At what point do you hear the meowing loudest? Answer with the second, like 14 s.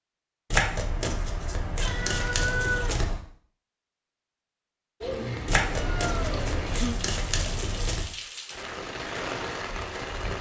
3 s.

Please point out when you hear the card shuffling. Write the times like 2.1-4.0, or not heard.
0.5-3.2, 5.5-8.1.